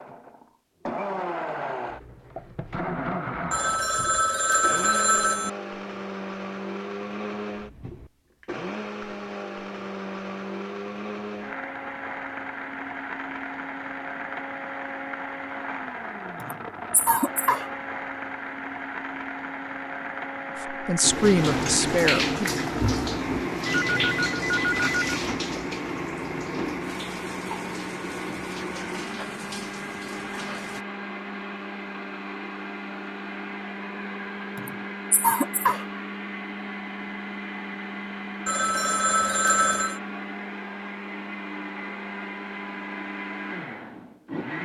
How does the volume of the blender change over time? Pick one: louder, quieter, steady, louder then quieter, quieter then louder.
steady.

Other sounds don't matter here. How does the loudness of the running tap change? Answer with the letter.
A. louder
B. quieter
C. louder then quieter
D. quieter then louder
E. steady
B.